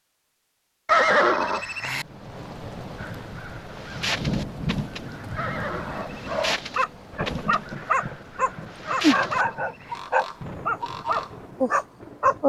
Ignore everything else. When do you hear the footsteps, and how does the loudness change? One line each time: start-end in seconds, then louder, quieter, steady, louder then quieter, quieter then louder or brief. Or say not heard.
not heard.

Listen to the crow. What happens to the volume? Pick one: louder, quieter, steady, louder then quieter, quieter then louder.
quieter then louder.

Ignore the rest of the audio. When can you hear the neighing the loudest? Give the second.
1 s.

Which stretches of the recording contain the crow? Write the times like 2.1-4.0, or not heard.
3.0-11.3.